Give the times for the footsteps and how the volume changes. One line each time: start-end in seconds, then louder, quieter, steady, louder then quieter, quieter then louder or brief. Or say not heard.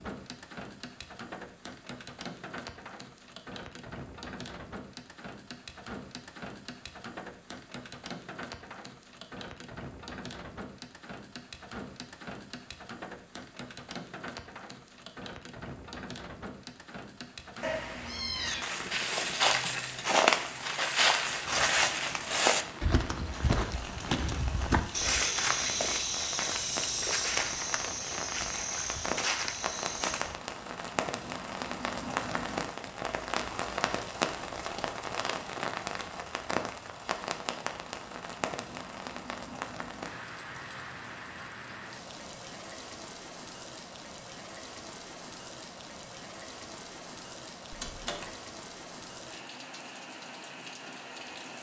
18.4-30.4 quieter.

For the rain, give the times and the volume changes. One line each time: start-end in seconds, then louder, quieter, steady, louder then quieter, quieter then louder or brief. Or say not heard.
0.0-51.5 louder then quieter.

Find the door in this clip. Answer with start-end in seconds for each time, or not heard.
47.7-48.4.